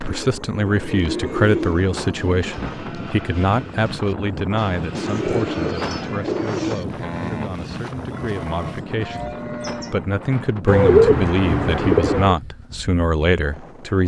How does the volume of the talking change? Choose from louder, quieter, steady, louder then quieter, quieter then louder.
quieter then louder.